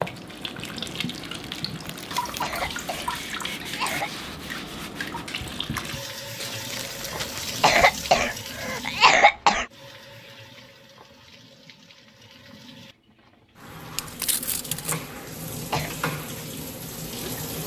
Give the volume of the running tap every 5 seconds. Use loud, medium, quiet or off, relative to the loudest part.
loud, loud, medium, loud.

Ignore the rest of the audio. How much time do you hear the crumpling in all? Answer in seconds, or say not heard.
3 s.